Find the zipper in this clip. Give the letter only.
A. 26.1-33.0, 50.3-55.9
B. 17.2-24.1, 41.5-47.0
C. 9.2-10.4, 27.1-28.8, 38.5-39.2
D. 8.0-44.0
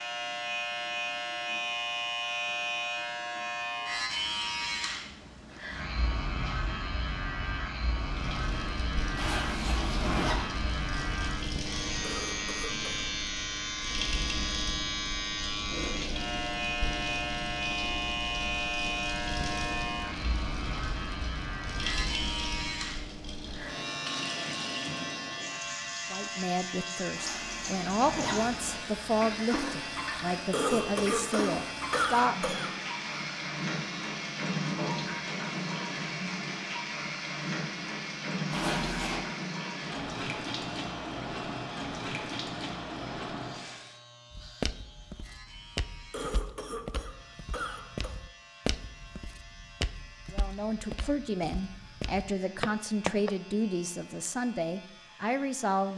C.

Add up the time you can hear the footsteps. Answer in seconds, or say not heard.
9 s.